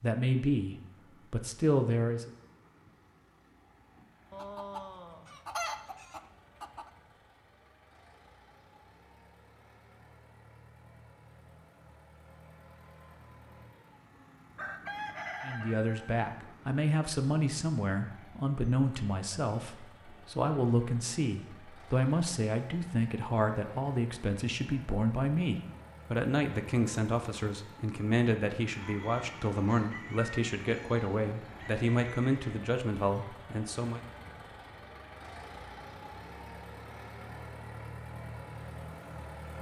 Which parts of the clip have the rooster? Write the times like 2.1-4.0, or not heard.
4.3-6.9, 14.6-16.1, 28.8-32.7.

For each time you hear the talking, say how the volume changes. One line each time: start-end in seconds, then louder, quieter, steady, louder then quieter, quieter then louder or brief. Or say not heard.
0.0-2.3 brief
15.4-34.0 steady.